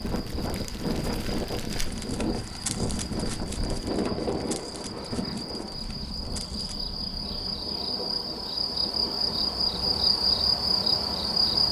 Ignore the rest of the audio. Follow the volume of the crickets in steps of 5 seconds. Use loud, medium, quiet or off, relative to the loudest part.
quiet, medium, loud.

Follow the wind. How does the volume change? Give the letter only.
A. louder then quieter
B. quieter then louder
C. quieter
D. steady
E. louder
C.